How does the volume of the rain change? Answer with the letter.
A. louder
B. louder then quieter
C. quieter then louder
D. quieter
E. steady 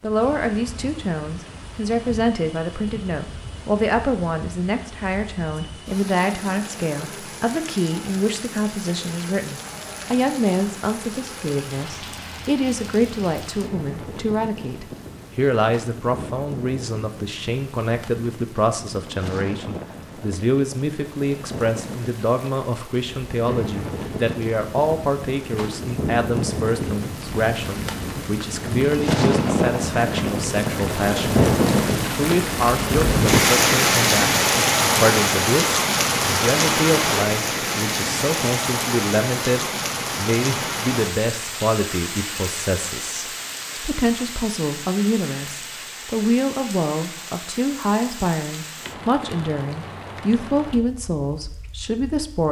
B.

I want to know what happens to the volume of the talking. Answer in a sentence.
The loudness of the talking stays about the same.